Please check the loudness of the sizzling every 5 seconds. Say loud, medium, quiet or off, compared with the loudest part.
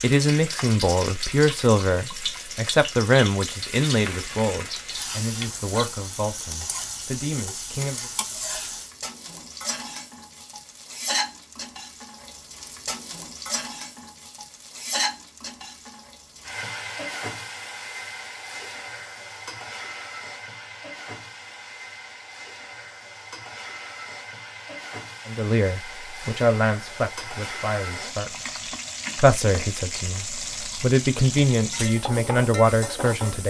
loud, loud, loud, loud, medium, loud, loud.